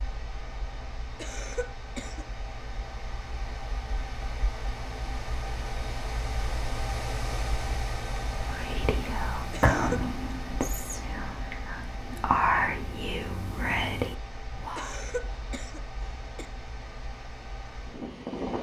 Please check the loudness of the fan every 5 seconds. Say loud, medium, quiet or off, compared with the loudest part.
medium, loud, medium, loud.